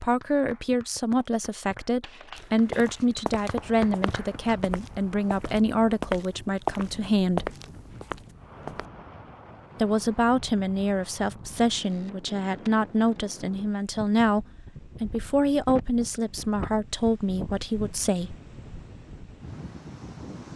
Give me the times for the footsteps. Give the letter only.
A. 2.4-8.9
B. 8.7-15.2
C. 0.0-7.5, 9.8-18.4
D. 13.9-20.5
A.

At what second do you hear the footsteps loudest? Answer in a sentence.
The volume of the footsteps peaks at 7 seconds.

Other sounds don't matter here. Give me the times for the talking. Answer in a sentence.
The talking can be heard from 0.0 to 7.5 s and from 9.8 to 18.4 s.